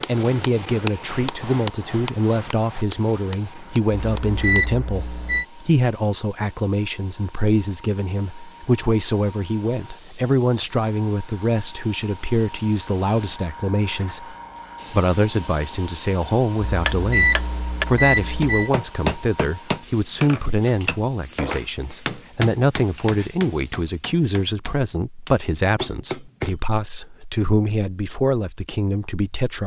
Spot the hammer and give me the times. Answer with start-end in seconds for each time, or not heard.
0.0-4.6, 16.9-26.6.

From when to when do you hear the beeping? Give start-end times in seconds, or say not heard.
4.0-5.5, 16.6-18.7.